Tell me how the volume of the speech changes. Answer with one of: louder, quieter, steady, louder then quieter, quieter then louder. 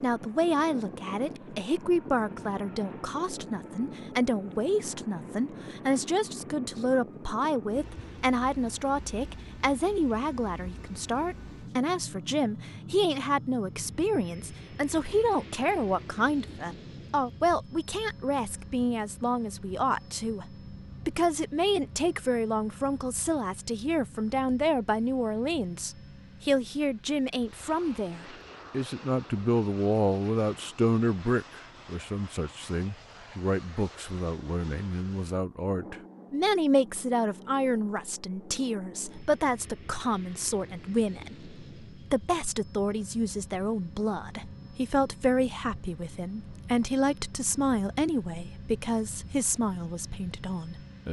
steady.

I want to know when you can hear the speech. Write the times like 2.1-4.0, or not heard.
0.0-20.4, 21.1-51.0.